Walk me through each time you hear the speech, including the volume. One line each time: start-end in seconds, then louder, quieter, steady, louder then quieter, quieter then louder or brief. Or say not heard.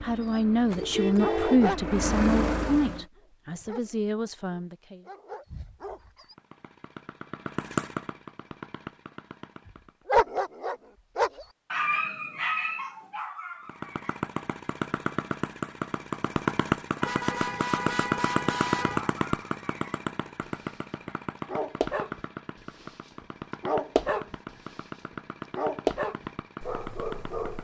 0.0-5.0 quieter then louder.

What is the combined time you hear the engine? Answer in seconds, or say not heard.
21 s.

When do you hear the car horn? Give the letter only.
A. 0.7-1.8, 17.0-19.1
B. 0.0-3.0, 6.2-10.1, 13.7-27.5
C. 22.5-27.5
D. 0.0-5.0
A.